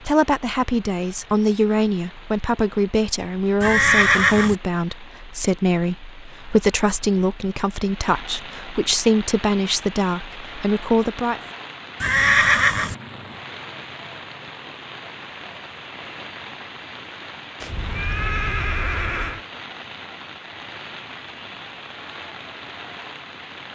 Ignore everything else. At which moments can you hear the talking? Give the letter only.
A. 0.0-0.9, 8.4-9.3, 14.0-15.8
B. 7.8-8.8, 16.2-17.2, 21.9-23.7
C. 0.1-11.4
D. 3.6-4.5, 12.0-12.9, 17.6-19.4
C.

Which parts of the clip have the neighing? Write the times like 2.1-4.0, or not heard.
3.6-4.5, 12.0-12.9, 17.6-19.4.